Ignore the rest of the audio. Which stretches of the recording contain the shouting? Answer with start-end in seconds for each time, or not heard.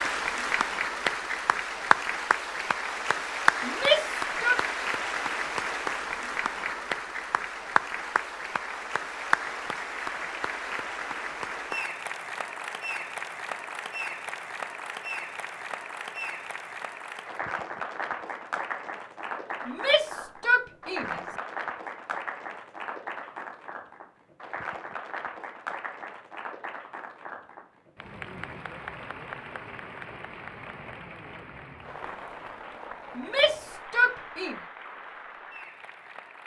3.6-4.6, 19.6-21.2, 33.1-34.5.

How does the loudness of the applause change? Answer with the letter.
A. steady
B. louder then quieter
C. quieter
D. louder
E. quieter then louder
C.